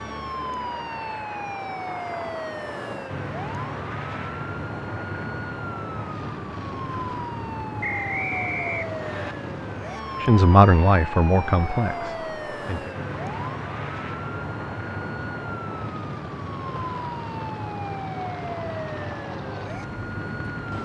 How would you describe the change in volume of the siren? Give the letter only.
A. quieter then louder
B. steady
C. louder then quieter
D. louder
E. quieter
B.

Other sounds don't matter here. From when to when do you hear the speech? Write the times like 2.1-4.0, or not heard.
10.2-12.9.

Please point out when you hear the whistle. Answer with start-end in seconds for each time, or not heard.
7.8-9.3.